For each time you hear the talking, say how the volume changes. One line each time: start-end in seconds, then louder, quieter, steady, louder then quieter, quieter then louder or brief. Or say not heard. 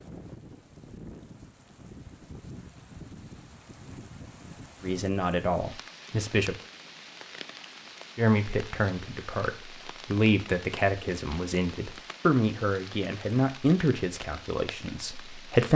4.8-6.5 brief
8.2-15.7 louder then quieter.